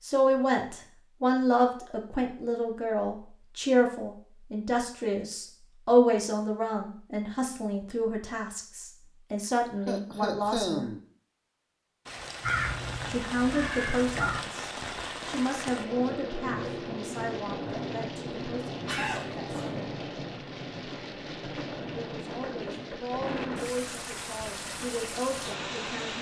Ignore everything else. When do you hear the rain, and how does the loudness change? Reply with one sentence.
The rain can be heard from 12.1 to 26.1 s, at a steady volume.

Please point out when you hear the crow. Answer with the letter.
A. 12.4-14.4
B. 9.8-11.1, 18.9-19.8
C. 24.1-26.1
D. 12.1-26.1
A.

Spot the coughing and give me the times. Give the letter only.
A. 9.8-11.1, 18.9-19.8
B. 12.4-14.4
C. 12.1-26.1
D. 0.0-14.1
A.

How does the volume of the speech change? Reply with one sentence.
The loudness of the speech goes down.